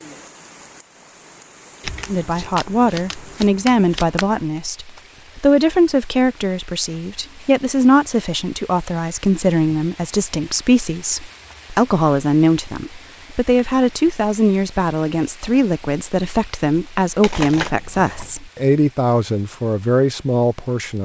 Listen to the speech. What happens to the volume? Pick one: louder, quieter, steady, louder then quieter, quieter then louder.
steady.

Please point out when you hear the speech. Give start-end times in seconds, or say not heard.
2.1-21.0.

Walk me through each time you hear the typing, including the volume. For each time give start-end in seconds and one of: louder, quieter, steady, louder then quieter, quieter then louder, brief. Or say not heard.
not heard.